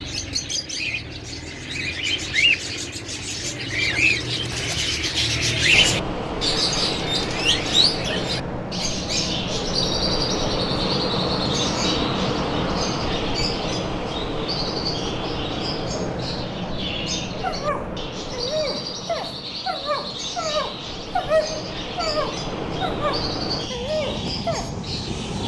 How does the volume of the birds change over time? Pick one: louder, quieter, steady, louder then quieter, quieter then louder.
quieter.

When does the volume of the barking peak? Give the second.
21 s.